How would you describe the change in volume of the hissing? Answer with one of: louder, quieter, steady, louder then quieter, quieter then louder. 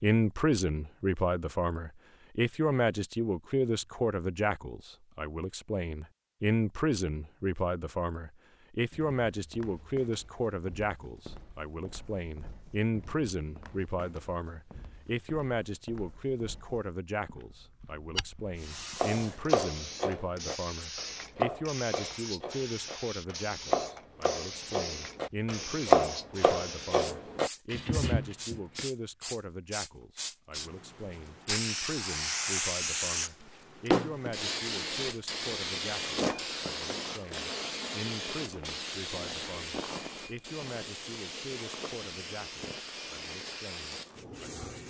louder then quieter.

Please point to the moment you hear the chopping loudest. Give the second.
26 s.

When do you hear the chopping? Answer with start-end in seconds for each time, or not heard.
19.0-28.9.